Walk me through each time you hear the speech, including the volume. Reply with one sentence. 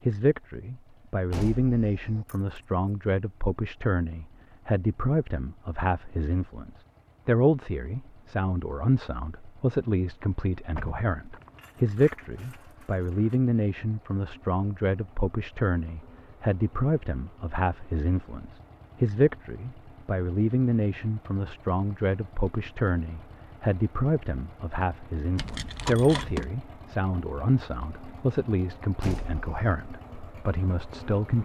You can hear the speech from 0.1 to 31.4 s, at a steady volume.